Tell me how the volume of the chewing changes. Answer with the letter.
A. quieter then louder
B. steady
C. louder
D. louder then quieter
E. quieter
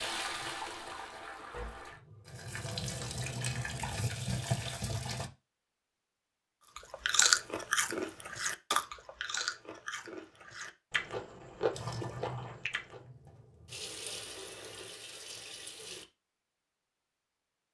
E.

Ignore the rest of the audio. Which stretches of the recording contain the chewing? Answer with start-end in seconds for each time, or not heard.
6.8-13.0.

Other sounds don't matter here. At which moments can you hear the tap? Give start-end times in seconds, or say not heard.
0.0-5.3, 11.7-16.1.